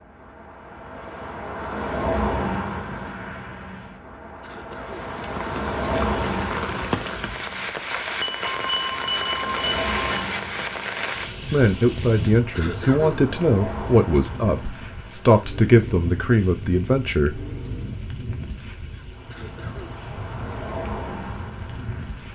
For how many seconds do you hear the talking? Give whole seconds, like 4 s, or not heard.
6 s.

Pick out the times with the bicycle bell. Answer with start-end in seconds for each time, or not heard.
8.2-10.2.